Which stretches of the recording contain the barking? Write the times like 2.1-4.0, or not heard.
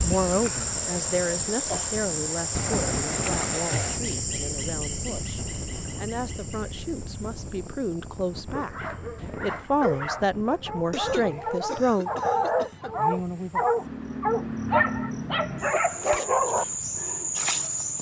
8.5-16.6.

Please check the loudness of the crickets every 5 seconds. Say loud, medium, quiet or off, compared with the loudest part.
loud, quiet, medium, loud.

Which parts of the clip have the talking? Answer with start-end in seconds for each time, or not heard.
0.0-12.1.